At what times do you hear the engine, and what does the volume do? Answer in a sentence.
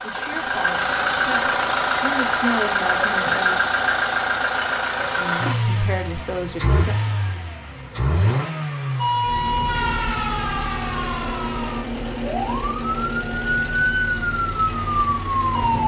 The engine can be heard from 0.0 to 15.8 s, getting quieter.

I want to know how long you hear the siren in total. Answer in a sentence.
You can hear the siren for 7 seconds altogether.